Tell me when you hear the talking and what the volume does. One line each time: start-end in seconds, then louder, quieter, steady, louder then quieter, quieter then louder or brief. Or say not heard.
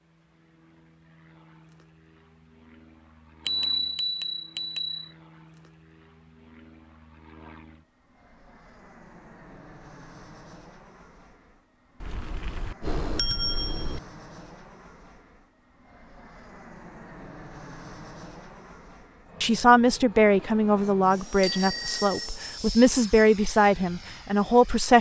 19.4-24.9 quieter then louder.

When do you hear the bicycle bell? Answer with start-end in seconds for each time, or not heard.
3.5-5.1, 12.0-14.0, 21.4-22.2.